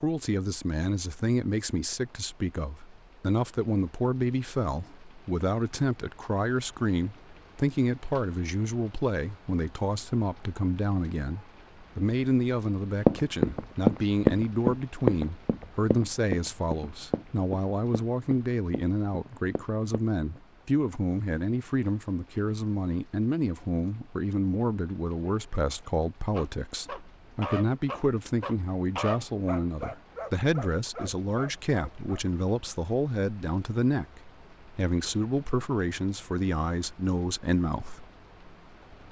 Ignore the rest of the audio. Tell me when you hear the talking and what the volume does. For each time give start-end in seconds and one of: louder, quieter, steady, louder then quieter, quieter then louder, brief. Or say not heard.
0.0-38.0 steady.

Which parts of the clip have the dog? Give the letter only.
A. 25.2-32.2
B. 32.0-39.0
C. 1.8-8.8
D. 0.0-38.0
A.